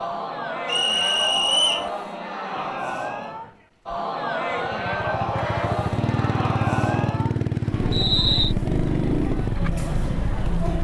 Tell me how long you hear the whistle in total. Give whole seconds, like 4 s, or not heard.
2 s.